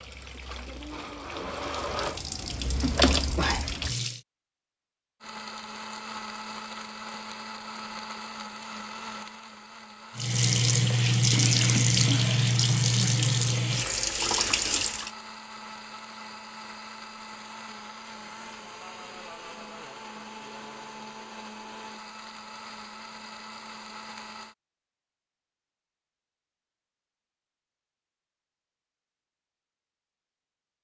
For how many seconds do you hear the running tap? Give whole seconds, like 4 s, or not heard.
9 s.